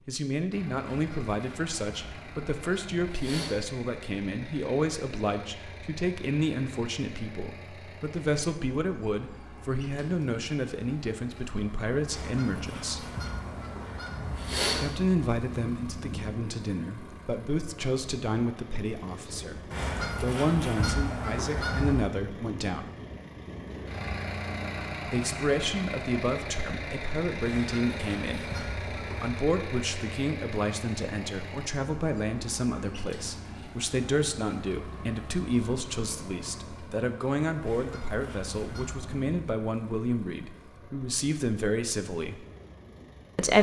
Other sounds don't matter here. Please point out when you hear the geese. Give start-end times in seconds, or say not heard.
0.9-3.6, 12.1-14.9, 19.7-22.0, 27.4-29.4, 37.6-39.2.